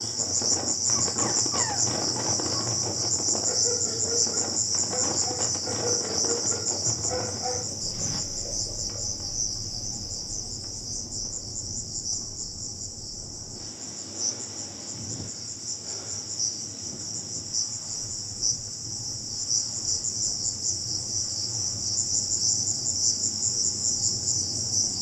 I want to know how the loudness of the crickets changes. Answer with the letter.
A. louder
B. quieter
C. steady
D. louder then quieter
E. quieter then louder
E.